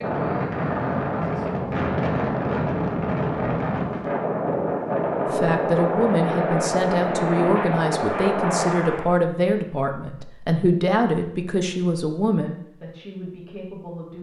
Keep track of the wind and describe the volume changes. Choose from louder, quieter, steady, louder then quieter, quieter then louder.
steady.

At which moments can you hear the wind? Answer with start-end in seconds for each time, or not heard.
0.0-9.2.